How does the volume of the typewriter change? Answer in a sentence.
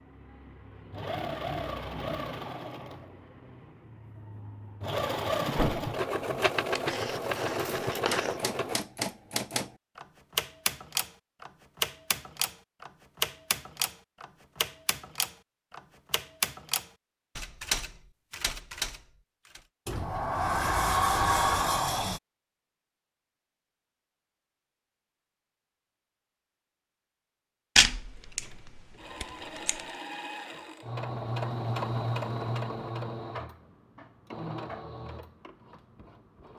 The loudness of the typewriter stays about the same.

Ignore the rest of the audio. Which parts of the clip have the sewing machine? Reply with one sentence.
The sewing machine can be heard from 0.0 to 8.8 s and from 28.4 to 36.5 s.